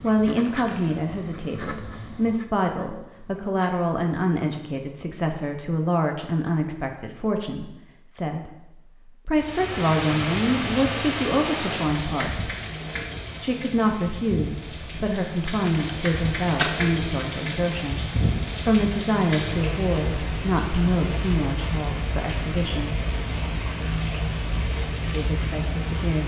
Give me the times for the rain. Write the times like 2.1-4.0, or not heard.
9.3-26.2.